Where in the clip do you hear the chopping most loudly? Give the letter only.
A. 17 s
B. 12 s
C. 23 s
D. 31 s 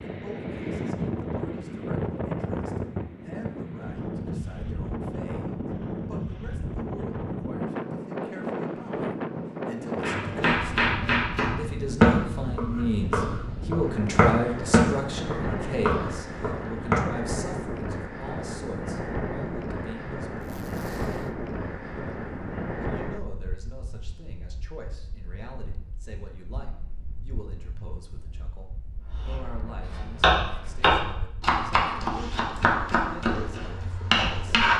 B.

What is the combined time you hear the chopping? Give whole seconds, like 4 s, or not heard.
13 s.